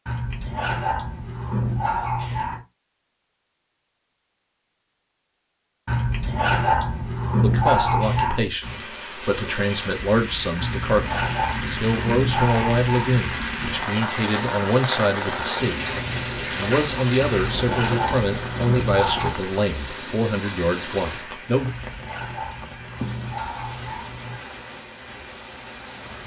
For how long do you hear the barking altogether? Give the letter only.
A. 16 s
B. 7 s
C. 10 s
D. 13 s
D.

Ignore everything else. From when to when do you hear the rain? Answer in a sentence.
The rain can be heard from 8.6 to 26.2 s.